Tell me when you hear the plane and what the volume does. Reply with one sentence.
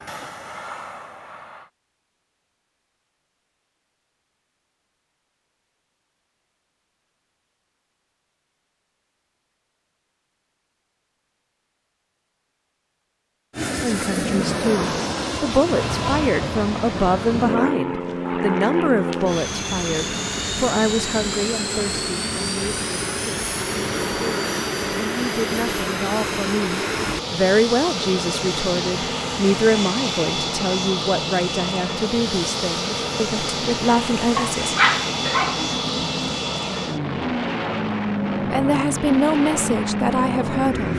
You can hear the plane briefly from 0.0 to 1.7 s; and from 13.5 to 40.9 s, at a steady volume.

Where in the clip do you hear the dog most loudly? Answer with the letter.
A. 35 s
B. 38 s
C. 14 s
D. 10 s
A.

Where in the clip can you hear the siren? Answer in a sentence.
The siren can't be heard in this clip.